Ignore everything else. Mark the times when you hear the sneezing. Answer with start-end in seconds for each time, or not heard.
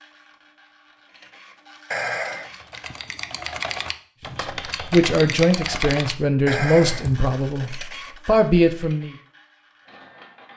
1.9-2.5, 6.5-7.0.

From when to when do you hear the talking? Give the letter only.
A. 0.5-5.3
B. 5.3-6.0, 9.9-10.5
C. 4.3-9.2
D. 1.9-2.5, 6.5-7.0
C.